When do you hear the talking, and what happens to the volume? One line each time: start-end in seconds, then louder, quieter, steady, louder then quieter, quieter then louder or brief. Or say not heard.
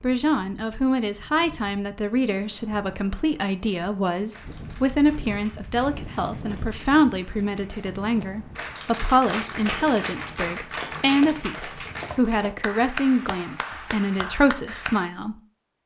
0.0-15.3 steady.